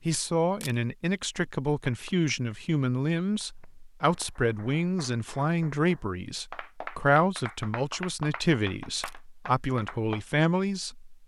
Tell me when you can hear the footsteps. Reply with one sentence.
The footsteps can't be heard in this clip.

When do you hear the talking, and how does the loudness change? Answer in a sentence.
You can hear the talking from 0.1 to 11.2 s, at a steady volume.